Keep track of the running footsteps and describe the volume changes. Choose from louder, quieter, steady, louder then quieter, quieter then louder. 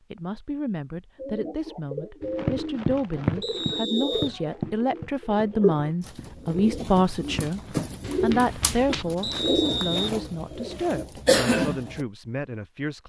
quieter then louder.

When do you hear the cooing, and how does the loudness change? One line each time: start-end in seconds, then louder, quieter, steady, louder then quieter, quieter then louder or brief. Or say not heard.
1.1-12.1 louder.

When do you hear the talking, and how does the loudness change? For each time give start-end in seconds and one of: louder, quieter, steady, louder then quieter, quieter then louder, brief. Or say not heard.
0.1-7.6 louder
8.2-13.0 quieter.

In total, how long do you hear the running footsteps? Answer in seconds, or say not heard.
7 s.